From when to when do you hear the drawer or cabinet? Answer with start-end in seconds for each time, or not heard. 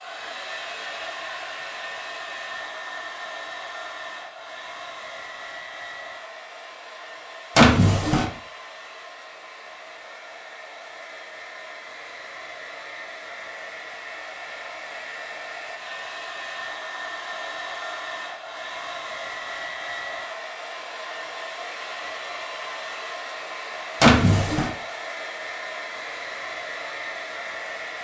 7.5-8.3, 24.0-24.7.